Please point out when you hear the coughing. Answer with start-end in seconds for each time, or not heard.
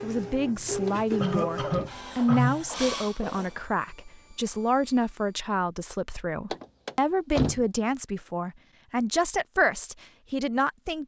1.2-2.6.